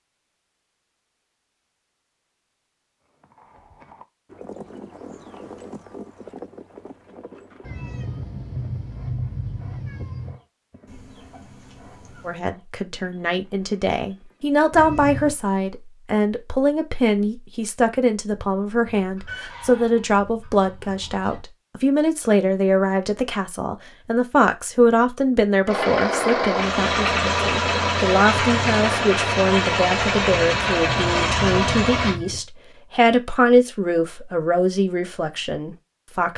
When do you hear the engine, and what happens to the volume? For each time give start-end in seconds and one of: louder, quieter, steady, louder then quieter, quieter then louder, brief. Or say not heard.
25.6-32.2 steady.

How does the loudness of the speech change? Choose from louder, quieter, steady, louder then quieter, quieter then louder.
steady.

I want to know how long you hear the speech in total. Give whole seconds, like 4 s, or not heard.
24 s.